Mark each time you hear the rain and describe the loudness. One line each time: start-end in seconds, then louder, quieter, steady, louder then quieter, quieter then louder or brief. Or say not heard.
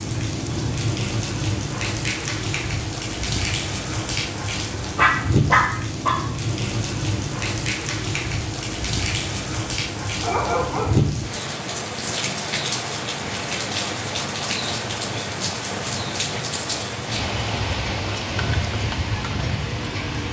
0.0-20.2 steady.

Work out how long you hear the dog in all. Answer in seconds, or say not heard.
2 s.